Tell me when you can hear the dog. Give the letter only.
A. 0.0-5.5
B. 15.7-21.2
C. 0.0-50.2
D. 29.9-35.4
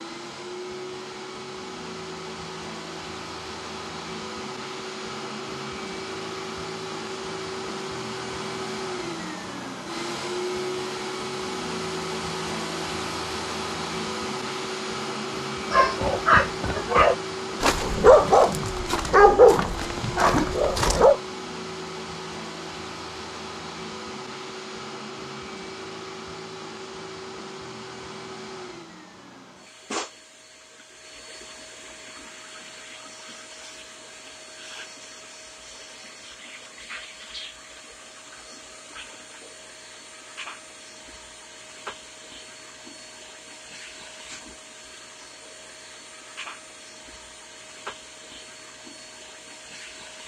B.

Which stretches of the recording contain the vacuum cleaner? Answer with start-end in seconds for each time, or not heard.
0.0-50.2.